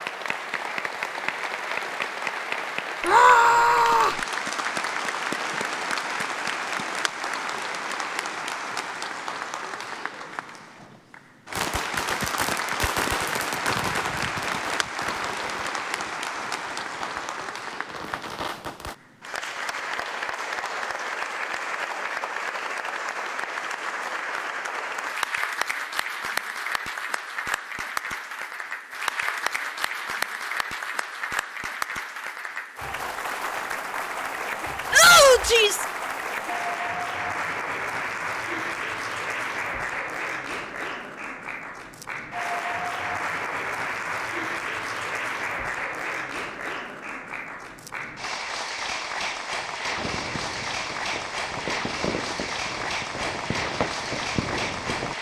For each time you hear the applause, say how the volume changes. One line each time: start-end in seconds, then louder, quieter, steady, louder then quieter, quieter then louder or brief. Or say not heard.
0.0-55.1 steady.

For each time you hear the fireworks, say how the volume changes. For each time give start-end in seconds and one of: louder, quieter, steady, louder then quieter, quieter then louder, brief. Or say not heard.
11.5-18.9 quieter then louder
50.0-55.1 louder.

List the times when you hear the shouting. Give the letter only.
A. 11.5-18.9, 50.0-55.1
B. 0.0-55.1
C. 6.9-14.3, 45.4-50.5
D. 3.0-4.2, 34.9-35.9
D.